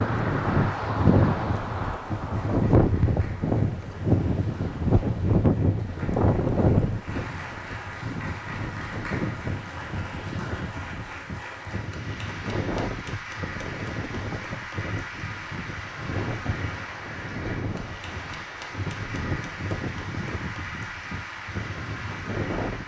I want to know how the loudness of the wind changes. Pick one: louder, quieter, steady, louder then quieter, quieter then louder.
quieter.